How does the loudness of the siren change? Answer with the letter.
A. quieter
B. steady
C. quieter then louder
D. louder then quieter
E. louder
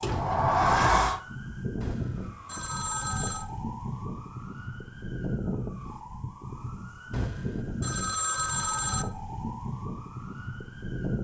B.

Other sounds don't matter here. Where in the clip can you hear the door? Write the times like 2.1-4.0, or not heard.
0.0-1.2.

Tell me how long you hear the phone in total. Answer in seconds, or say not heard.
4 s.